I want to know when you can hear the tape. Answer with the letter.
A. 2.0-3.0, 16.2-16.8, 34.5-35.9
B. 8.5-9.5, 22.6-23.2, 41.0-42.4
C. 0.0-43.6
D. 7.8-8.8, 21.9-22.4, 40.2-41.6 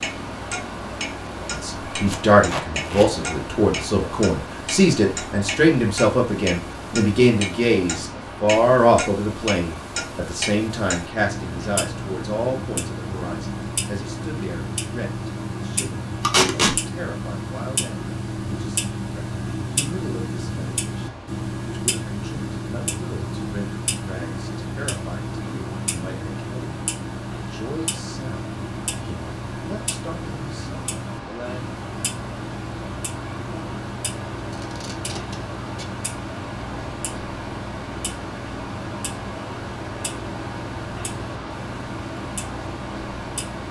A.